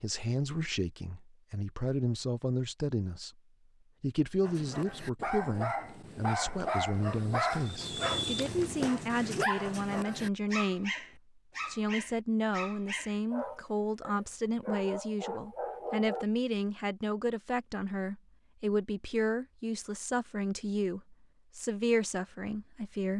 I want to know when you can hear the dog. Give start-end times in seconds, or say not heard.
4.4-16.2.